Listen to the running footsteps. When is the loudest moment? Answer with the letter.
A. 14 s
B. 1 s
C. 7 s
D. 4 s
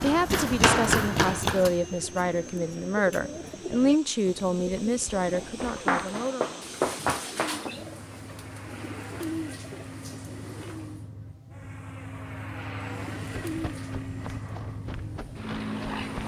B.